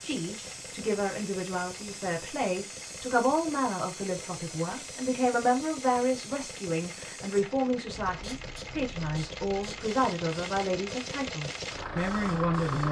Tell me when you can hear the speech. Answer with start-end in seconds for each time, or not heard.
0.0-12.8.